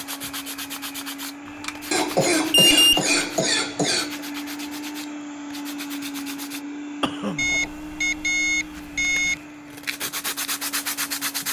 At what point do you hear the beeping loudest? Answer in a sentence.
The loudest moment of the beeping is at 3 seconds.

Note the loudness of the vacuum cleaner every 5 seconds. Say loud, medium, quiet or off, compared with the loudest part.
loud, loud, medium.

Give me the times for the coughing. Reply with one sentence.
The coughing can be heard from 1.9 to 4.2 s and from 7.0 to 7.5 s.